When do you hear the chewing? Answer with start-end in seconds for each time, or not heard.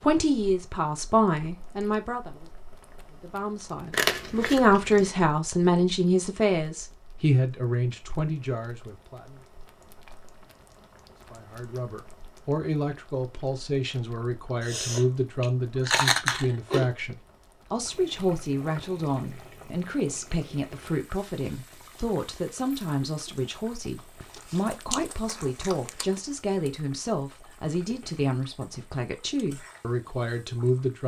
3.9-5.1, 14.6-16.9, 24.2-26.2.